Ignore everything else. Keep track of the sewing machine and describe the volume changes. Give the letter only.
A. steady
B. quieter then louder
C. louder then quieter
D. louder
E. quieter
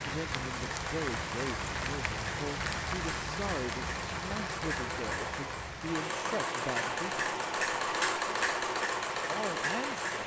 D.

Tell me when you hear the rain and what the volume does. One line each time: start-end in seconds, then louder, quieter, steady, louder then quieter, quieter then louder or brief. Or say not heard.
0.0-10.2 quieter.